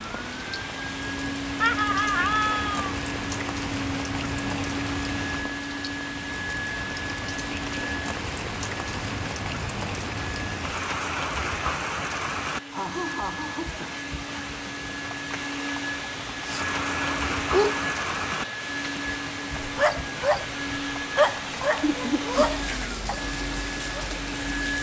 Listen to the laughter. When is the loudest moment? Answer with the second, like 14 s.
2 s.